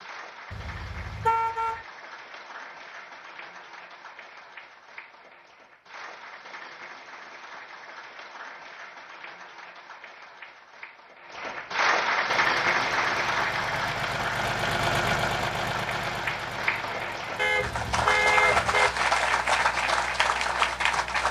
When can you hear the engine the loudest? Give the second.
15 s.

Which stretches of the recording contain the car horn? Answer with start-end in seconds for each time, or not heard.
0.5-1.8, 17.4-18.9.